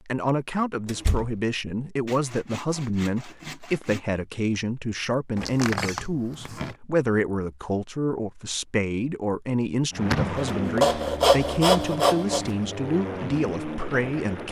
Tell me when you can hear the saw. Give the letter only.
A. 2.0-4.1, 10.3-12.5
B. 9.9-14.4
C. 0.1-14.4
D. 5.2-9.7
A.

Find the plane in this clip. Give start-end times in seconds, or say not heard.
9.9-14.4.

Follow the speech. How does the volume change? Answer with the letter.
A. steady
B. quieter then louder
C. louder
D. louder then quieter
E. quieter
A.